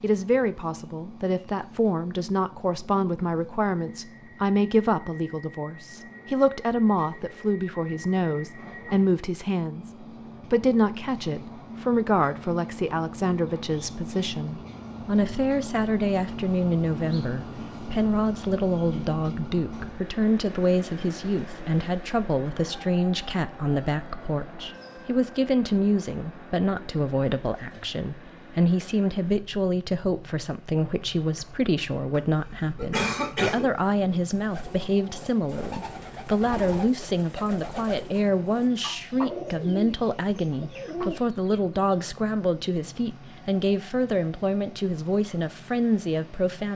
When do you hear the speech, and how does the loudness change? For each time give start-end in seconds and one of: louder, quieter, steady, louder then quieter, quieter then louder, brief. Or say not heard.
0.0-46.7 steady.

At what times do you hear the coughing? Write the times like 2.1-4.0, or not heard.
32.1-33.8.